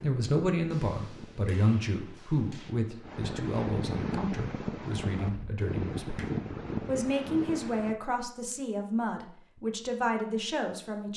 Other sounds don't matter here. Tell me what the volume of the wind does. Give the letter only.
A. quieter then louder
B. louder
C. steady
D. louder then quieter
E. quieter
B.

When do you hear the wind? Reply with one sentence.
The wind can be heard from 0.0 to 8.0 s.